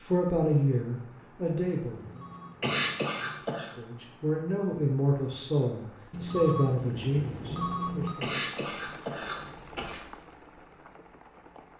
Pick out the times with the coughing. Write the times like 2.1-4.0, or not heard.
2.6-3.8, 8.2-10.0.